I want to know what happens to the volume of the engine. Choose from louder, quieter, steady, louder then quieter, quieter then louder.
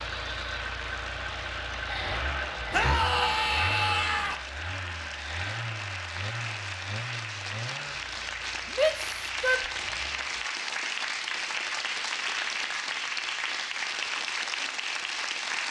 quieter.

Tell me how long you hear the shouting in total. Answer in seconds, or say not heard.
3 s.